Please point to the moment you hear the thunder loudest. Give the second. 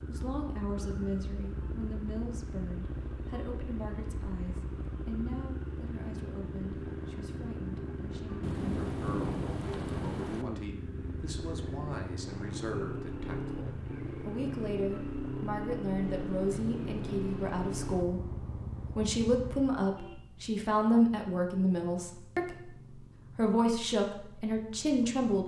9 s.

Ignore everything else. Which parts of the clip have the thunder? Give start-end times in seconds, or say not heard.
8.4-10.4, 16.0-18.1.